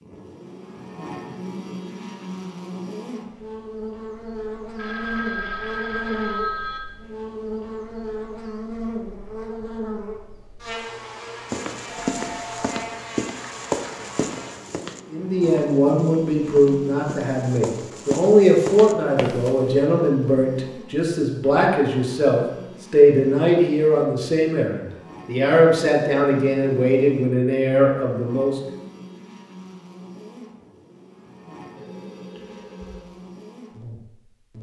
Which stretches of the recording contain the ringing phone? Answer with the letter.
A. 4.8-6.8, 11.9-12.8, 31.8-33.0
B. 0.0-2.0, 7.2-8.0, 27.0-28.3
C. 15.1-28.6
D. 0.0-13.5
A.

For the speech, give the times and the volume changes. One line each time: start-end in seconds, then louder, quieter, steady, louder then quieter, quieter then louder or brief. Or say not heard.
15.1-28.6 steady.